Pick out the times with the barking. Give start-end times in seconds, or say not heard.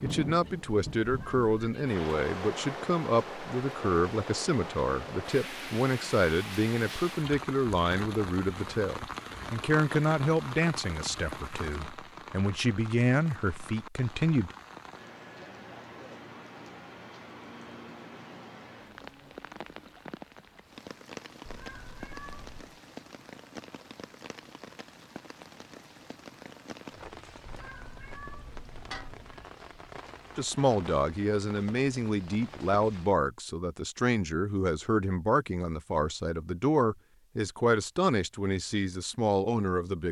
not heard.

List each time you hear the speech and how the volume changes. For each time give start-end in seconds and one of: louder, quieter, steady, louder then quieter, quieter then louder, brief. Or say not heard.
0.0-14.6 steady
30.4-40.0 steady.